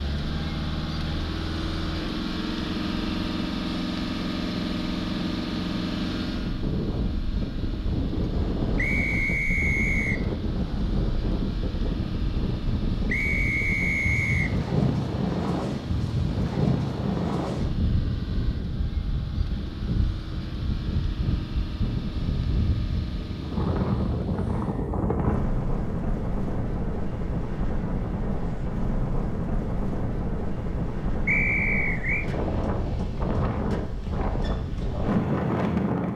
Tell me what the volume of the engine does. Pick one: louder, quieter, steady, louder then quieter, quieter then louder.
quieter.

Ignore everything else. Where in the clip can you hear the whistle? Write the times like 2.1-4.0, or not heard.
8.8-10.2, 13.1-14.6, 31.2-32.2.